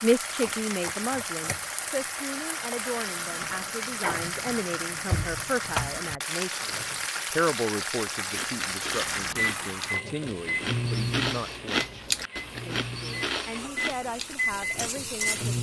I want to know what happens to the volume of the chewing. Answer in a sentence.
The loudness of the chewing goes up, then down.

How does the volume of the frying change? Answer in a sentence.
The loudness of the frying goes down.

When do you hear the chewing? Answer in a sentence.
You can hear the chewing from 8.2 to 15.5 s.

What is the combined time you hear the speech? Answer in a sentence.
The speech can be heard for 15 seconds in total.